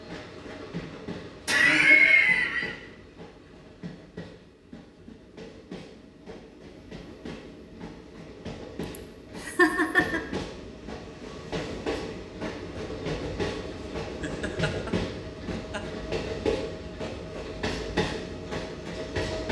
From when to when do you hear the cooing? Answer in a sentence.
The cooing can't be heard in this clip.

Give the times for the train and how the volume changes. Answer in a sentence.
The train can be heard from 0.0 to 19.4 s, getting louder.